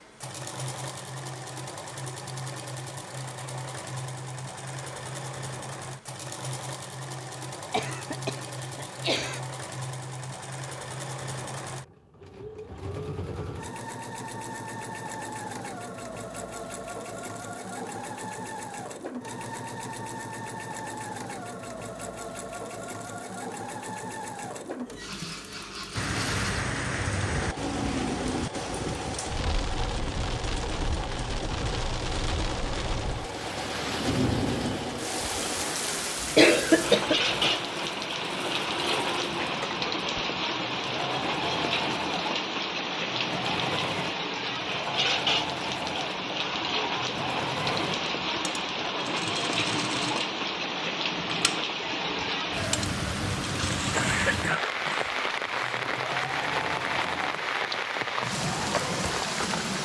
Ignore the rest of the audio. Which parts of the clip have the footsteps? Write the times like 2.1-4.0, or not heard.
not heard.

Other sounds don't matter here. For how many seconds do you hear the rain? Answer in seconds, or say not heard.
34 s.